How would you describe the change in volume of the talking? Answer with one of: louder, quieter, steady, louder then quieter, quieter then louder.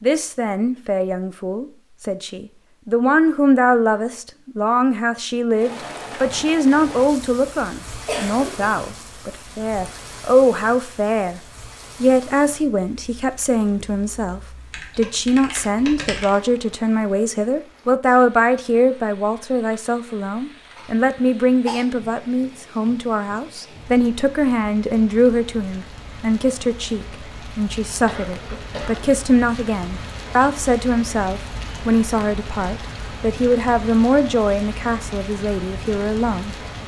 steady.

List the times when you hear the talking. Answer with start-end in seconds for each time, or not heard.
0.0-11.4, 12.0-36.5.